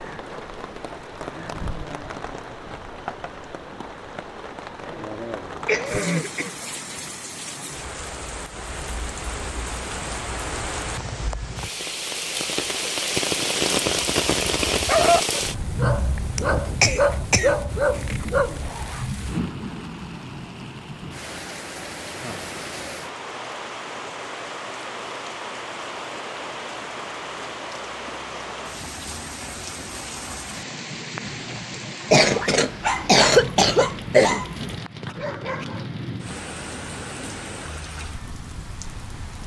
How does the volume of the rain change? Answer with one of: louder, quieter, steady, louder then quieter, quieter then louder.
louder then quieter.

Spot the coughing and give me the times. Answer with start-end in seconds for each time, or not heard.
5.7-6.6, 16.4-18.3, 32.1-34.5.